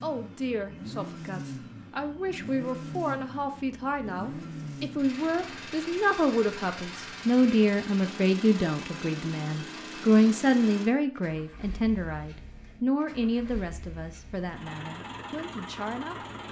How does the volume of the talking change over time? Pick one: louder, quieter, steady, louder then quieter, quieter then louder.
louder then quieter.